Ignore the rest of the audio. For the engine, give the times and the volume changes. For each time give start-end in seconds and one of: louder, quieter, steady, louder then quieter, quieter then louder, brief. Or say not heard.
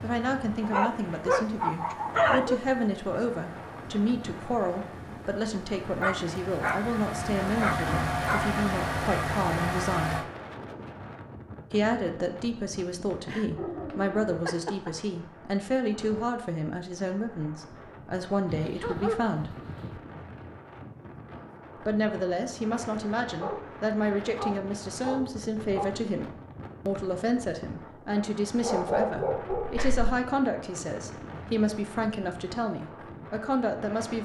0.0-10.2 louder.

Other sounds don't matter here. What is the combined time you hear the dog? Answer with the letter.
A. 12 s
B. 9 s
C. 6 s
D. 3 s
A.